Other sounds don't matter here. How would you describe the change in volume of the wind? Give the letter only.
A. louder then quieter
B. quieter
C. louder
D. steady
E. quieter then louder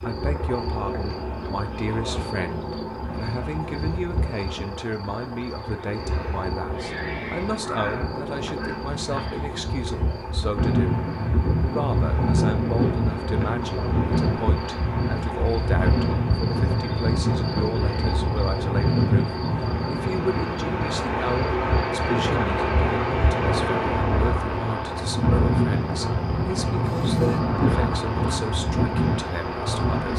D.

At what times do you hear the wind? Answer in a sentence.
You can hear the wind from 10.6 to 30.1 s.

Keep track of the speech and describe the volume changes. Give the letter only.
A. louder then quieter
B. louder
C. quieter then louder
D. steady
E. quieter
D.